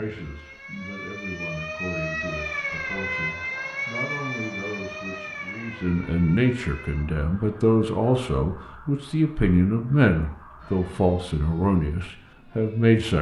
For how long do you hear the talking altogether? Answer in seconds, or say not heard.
13 s.